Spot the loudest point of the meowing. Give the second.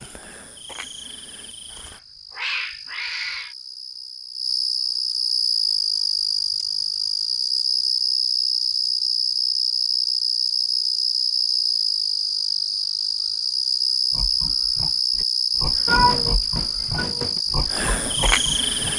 16 s.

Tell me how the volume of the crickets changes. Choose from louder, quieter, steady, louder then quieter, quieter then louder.
louder.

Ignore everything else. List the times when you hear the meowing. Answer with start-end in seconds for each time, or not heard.
1.7-3.5, 15.8-17.4.